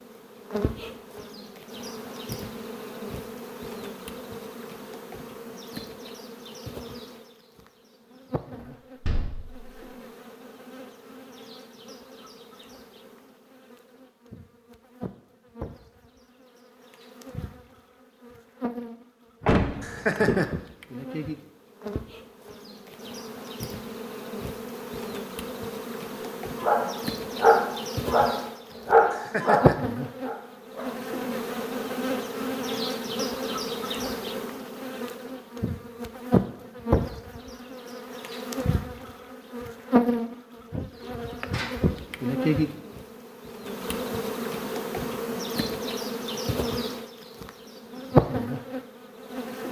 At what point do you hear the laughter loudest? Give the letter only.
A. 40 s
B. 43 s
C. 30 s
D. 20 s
D.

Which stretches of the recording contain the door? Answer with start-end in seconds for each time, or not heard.
8.6-9.8, 19.4-20.4, 41.0-41.7.